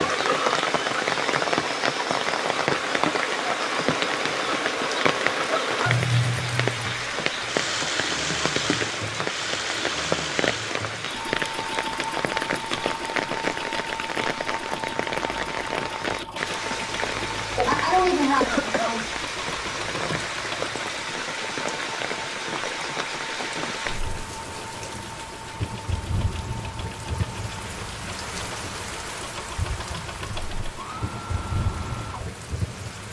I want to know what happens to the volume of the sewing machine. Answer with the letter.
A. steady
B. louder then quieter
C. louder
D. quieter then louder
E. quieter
E.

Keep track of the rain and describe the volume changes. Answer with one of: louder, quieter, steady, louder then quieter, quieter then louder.
quieter.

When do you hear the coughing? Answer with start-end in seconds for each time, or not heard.
17.6-19.1.